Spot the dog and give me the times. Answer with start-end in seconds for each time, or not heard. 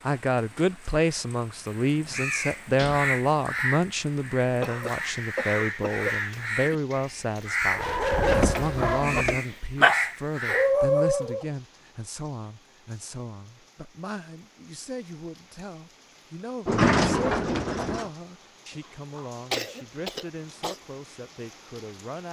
7.7-11.4.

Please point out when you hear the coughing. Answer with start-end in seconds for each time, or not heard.
4.6-6.2, 18.7-20.8.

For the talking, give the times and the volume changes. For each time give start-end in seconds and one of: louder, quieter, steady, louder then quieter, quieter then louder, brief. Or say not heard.
0.0-22.2 quieter.